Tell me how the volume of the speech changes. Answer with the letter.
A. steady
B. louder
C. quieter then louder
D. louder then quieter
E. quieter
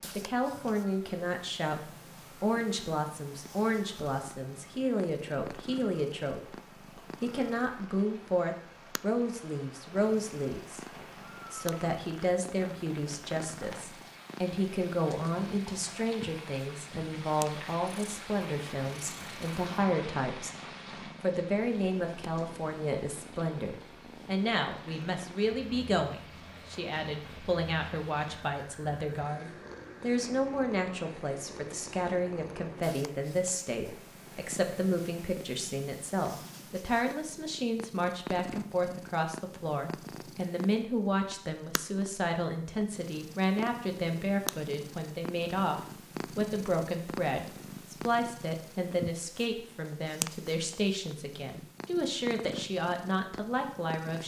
A.